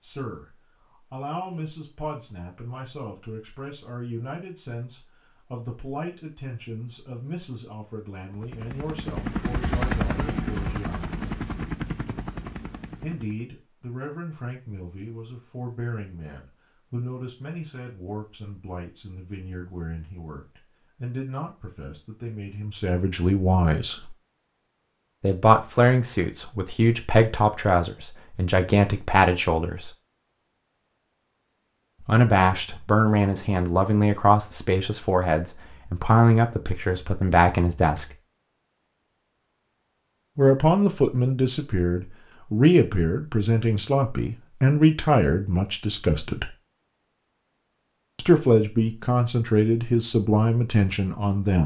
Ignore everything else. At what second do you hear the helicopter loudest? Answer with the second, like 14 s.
10 s.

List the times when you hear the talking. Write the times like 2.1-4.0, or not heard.
0.0-11.2, 13.0-24.1, 25.2-29.9, 32.0-38.1, 40.4-46.5, 48.1-51.6.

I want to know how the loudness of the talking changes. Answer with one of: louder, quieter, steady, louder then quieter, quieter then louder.
louder.